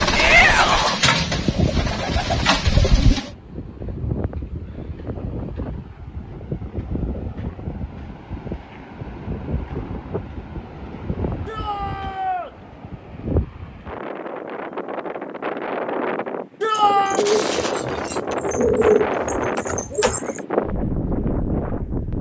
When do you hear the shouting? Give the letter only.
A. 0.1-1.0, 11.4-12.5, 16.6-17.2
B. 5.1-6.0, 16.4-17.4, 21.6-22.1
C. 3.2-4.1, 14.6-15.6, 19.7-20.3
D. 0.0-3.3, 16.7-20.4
A.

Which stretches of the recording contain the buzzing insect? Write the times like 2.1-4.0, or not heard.
not heard.